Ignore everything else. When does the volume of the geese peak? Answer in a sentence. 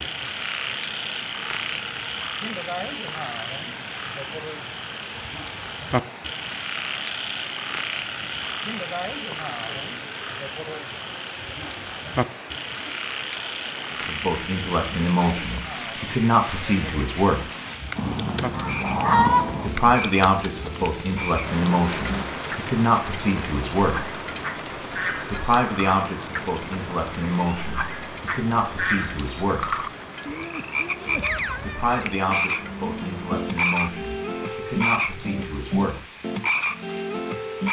The volume of the geese peaks at 19 seconds.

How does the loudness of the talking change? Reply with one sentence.
The loudness of the talking goes down.